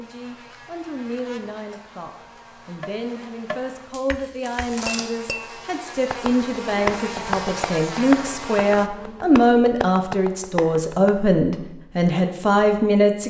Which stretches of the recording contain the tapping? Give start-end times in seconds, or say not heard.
2.8-5.5, 6.1-11.1.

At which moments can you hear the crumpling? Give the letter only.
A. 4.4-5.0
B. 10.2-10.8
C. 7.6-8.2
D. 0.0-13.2
A.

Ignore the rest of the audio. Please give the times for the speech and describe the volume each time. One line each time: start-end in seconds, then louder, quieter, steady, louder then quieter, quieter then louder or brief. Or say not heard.
0.0-13.2 louder.